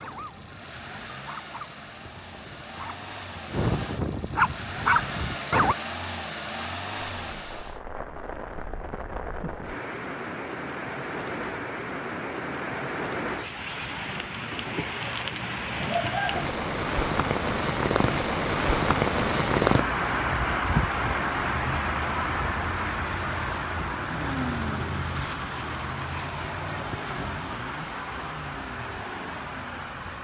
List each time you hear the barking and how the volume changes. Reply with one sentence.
The barking can be heard from 0.0 to 5.8 s, getting louder.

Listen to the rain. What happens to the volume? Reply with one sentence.
The volume of the rain goes up, then down.